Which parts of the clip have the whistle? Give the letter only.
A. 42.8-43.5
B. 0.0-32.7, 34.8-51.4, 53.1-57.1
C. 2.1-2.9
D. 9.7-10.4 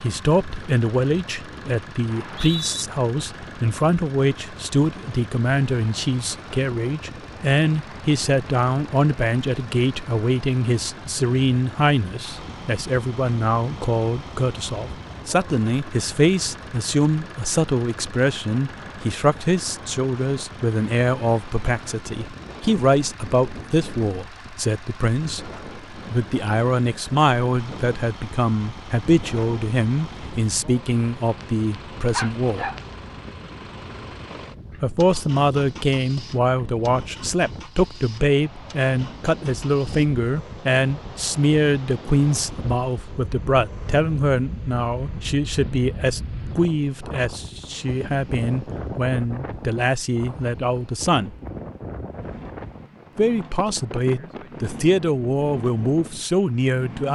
C.